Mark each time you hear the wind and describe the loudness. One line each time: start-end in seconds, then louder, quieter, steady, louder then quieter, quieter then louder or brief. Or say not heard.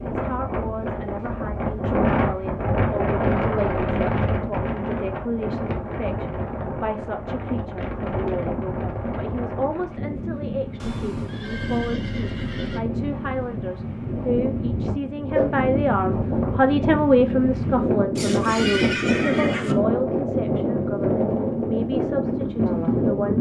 0.0-23.3 quieter then louder.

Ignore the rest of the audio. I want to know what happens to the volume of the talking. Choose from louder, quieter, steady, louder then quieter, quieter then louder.
louder then quieter.